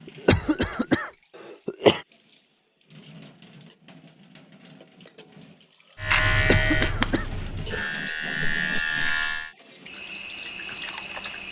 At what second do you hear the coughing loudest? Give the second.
2 s.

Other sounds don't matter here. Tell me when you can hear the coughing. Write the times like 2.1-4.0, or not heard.
0.2-2.0, 6.5-7.2.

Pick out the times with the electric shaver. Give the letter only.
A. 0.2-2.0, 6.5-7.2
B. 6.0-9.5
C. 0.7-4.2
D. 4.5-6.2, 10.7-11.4
B.